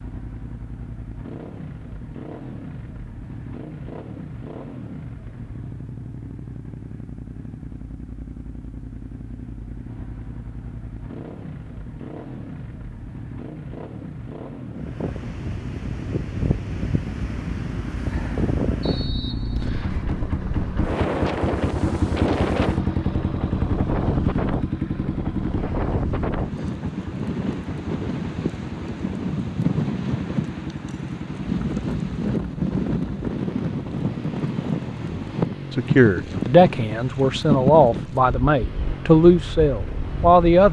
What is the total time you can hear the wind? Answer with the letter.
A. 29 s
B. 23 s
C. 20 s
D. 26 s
D.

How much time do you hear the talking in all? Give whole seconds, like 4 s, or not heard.
5 s.